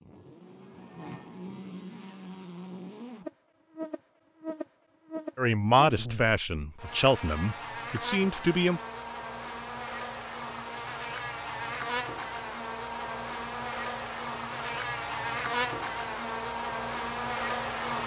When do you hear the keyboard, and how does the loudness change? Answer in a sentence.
The keyboard can't be heard in this clip.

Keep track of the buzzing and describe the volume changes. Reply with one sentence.
The loudness of the buzzing goes up.